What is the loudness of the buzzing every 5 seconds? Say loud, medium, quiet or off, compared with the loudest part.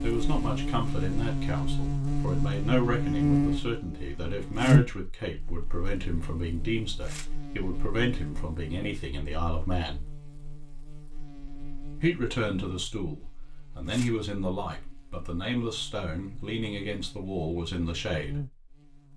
loud, quiet, quiet, quiet.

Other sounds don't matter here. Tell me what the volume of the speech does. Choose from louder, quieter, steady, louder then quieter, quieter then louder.
steady.